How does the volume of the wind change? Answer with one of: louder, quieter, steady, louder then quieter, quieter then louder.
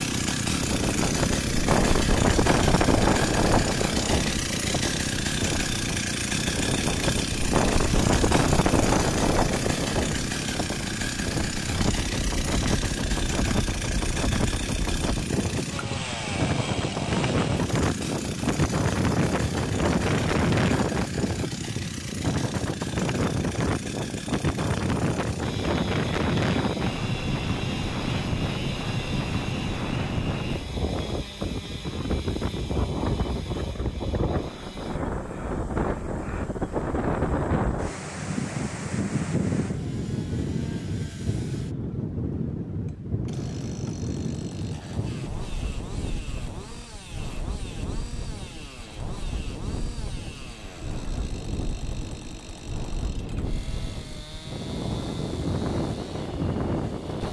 quieter.